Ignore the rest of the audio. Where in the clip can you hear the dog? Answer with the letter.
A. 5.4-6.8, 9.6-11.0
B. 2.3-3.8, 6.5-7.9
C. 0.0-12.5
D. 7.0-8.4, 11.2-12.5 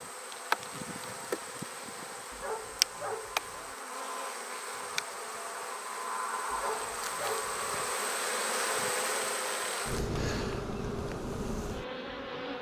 B.